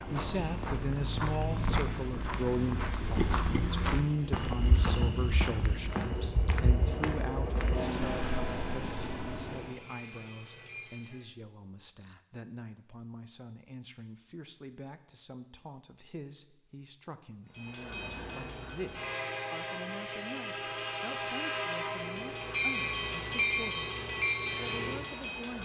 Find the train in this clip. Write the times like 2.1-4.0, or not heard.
0.0-11.2, 17.5-25.5.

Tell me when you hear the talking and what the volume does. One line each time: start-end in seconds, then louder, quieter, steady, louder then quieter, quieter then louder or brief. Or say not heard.
0.1-23.9 quieter
24.6-25.5 brief.